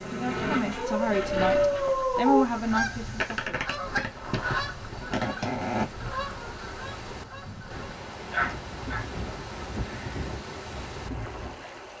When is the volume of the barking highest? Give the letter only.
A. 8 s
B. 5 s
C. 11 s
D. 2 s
D.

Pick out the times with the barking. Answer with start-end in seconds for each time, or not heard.
0.8-2.5, 7.5-9.1.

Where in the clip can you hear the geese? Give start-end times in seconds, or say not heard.
2.5-11.7.